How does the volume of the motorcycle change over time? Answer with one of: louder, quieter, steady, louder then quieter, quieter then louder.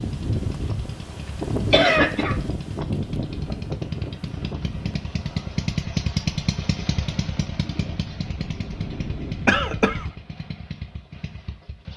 louder then quieter.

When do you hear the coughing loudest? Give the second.
2 s.